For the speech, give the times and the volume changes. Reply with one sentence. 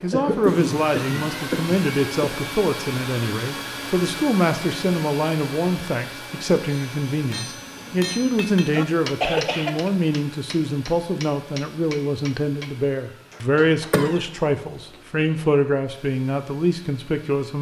The speech can be heard from 0.0 to 17.5 s, at a steady volume.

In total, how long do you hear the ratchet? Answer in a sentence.
The ratchet can't be heard in this clip.